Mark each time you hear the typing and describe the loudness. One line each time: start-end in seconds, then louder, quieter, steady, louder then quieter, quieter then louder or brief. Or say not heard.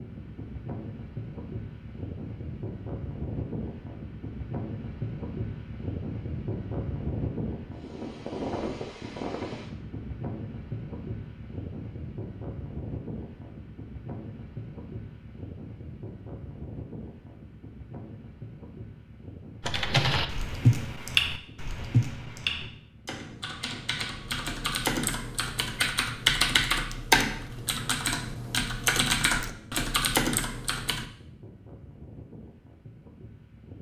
19.6-31.1 quieter then louder.